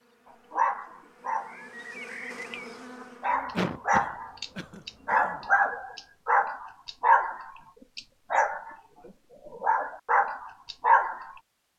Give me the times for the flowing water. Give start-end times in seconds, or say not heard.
not heard.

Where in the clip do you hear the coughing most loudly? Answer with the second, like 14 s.
4 s.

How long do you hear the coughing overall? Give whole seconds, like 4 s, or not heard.
2 s.